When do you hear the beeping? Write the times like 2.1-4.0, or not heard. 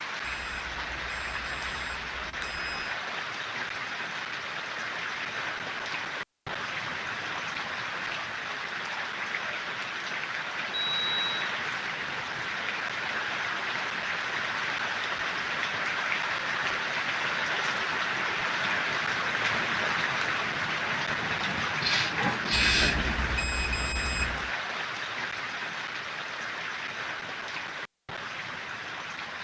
0.2-2.9, 10.7-11.5, 22.5-24.5.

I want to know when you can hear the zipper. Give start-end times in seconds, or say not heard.
not heard.